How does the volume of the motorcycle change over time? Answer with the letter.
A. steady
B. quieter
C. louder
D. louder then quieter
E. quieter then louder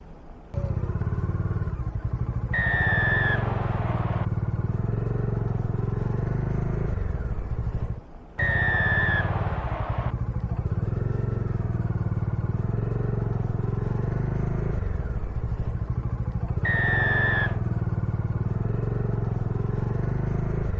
A.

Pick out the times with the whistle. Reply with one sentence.
You can hear the whistle from 2.5 to 4.2 s, from 8.3 to 10.2 s and from 16.6 to 17.6 s.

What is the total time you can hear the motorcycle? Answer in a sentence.
The motorcycle can be heard for 21 seconds in total.